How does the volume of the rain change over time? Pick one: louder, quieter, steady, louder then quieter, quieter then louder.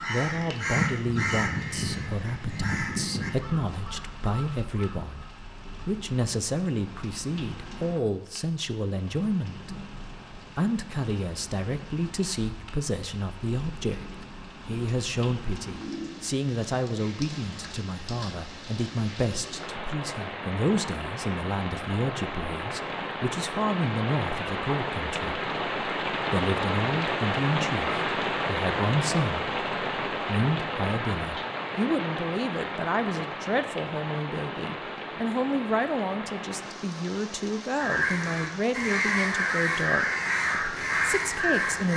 louder then quieter.